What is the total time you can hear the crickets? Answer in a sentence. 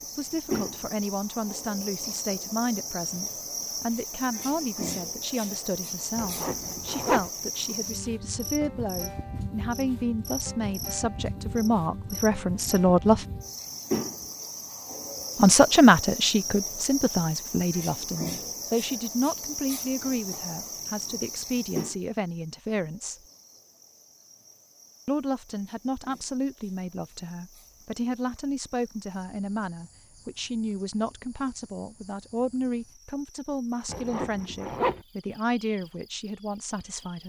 You can hear the crickets for 37 seconds altogether.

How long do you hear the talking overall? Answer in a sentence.
The talking can be heard for 33 seconds in total.